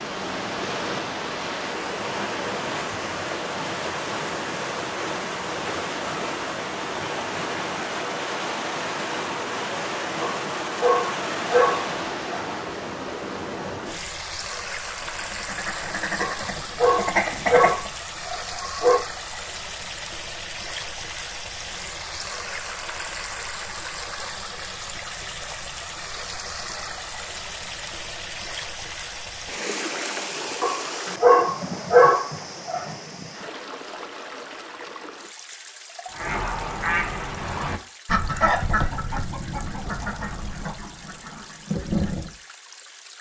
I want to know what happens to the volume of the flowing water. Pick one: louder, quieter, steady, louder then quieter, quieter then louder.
quieter.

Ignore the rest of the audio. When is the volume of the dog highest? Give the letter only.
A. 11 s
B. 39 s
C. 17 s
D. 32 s
D.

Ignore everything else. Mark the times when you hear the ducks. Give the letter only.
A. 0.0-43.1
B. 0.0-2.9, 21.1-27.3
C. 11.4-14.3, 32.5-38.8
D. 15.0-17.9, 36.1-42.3
D.